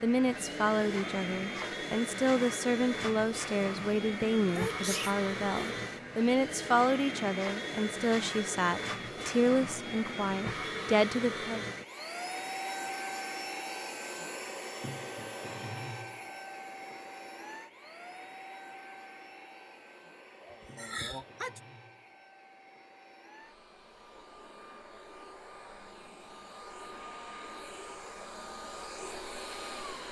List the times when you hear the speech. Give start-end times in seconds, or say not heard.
0.0-11.7.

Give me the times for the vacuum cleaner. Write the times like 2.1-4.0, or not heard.
0.0-30.0.